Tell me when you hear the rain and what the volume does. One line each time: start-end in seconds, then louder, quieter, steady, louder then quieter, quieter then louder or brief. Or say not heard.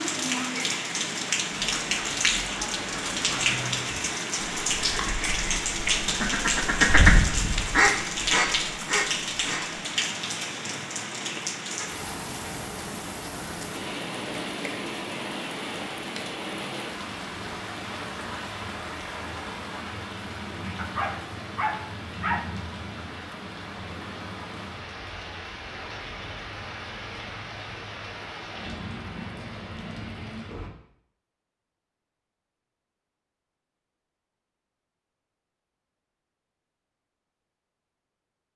0.0-30.7 quieter.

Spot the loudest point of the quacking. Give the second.
7 s.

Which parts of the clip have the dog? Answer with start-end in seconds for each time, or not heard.
20.8-22.4.